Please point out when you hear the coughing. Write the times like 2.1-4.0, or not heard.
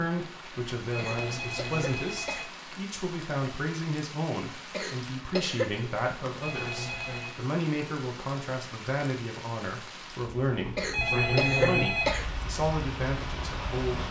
0.9-2.5, 4.7-5.7, 10.8-12.2.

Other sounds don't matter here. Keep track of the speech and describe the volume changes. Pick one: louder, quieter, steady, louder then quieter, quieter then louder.
steady.